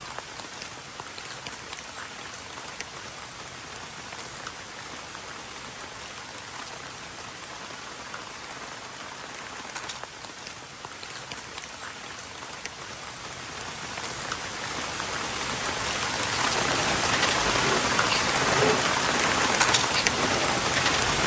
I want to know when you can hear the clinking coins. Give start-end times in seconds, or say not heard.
not heard.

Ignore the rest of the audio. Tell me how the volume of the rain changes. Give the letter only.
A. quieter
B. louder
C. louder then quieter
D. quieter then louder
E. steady
B.